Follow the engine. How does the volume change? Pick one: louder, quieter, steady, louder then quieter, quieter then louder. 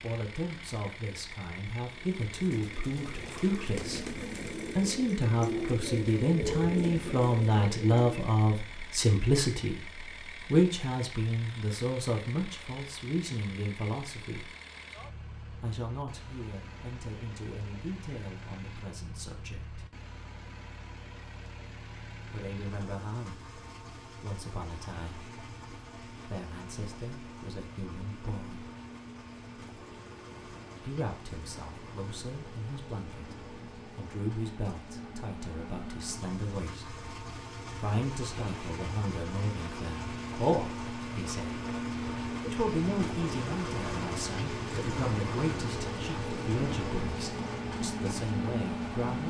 louder.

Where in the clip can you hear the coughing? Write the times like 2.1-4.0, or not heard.
not heard.